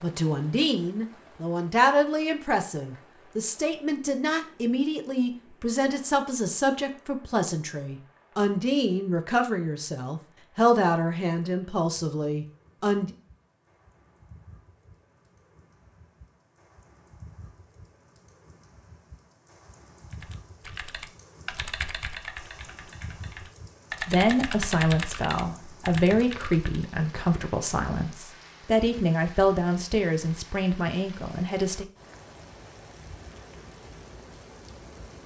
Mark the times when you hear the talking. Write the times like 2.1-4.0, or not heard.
0.0-13.2, 24.1-31.9.